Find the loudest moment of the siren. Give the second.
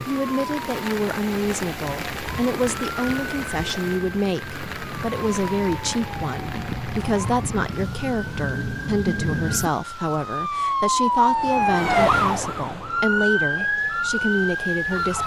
12 s.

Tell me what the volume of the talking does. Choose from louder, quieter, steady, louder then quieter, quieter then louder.
steady.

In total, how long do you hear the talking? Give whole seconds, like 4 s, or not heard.
15 s.